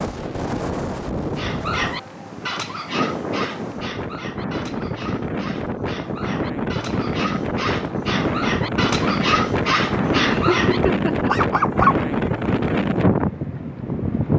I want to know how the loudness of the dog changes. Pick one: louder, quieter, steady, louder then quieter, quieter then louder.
quieter then louder.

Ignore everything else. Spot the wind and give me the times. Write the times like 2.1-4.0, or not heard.
0.0-14.3.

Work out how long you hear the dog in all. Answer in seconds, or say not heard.
11 s.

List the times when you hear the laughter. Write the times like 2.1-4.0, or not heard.
10.2-11.3.